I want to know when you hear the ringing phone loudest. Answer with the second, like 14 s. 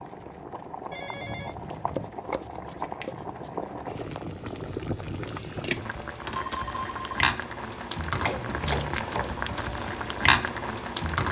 7 s.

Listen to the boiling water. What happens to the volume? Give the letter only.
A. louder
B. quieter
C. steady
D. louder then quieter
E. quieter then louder
A.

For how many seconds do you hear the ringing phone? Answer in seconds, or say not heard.
2 s.